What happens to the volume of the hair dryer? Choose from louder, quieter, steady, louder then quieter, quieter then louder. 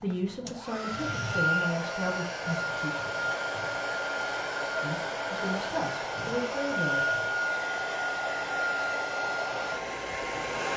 steady.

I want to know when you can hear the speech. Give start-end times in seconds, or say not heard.
0.0-2.9, 4.8-7.2.